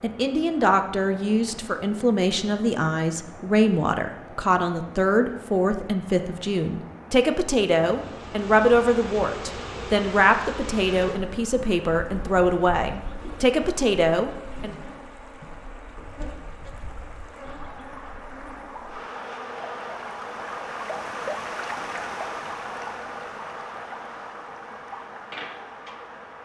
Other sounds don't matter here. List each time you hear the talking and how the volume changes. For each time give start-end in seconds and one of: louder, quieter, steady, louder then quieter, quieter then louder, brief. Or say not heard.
0.0-14.8 steady.